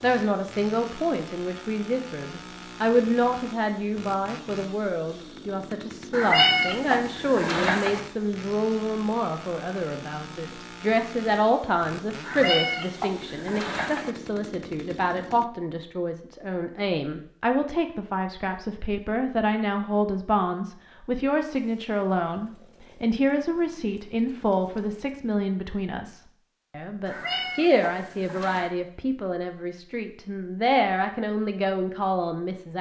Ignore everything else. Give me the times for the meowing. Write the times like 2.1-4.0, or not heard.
6.1-8.0, 12.2-14.2, 27.1-28.7.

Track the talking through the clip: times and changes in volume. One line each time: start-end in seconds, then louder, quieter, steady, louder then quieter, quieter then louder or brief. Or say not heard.
0.0-32.7 steady.